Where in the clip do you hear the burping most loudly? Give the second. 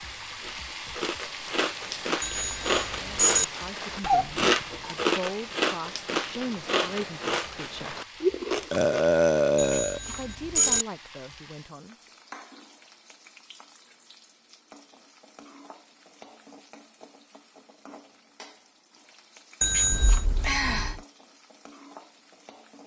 9 s.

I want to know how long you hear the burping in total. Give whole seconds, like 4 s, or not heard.
3 s.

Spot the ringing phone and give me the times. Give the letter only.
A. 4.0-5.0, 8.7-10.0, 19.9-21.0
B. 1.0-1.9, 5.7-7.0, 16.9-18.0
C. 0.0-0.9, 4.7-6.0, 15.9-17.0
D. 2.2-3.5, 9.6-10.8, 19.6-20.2
D.